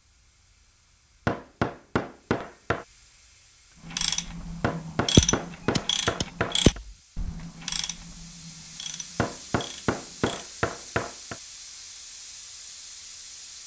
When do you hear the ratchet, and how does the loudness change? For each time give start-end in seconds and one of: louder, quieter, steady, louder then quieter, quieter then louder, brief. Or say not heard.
3.8-10.6 quieter.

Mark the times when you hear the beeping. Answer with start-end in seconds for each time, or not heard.
5.2-6.8.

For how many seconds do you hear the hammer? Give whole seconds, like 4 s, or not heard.
6 s.